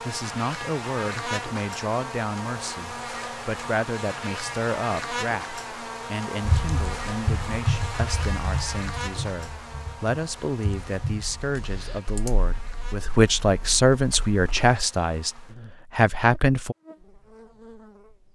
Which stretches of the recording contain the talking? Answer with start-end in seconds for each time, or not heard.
0.0-16.8.